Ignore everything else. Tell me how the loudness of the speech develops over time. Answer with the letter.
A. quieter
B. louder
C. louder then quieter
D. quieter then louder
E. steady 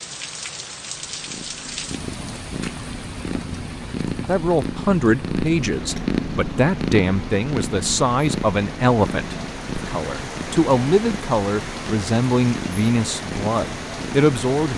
E.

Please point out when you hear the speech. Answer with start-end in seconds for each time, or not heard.
4.2-14.7.